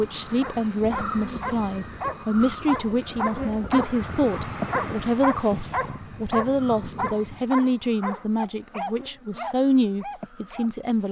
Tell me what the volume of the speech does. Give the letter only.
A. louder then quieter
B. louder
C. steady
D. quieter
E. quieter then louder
C.